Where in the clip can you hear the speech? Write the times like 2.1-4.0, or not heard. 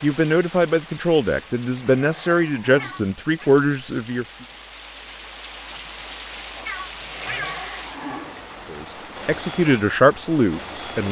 0.0-4.2, 8.7-11.0.